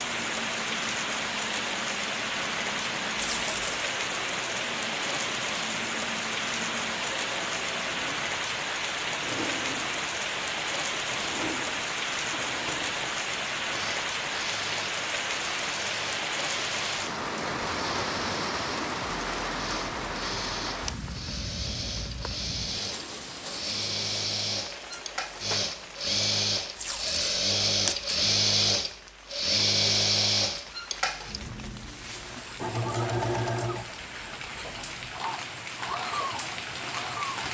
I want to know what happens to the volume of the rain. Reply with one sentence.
The loudness of the rain goes down.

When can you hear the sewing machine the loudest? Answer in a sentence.
The volume of the sewing machine peaks at 30 seconds.